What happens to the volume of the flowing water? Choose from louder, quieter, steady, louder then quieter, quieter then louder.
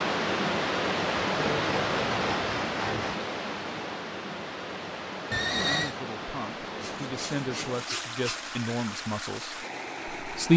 quieter.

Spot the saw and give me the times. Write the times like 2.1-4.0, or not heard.
1.2-3.1, 6.8-8.6.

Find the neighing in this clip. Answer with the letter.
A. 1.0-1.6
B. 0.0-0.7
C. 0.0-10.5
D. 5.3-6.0
D.